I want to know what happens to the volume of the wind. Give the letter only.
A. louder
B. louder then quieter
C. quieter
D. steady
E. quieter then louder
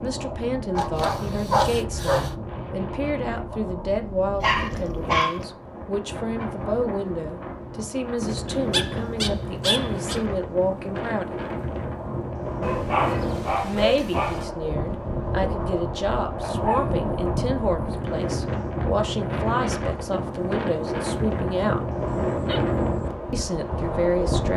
A.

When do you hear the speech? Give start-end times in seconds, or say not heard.
0.0-11.3, 13.6-21.9, 23.3-24.5.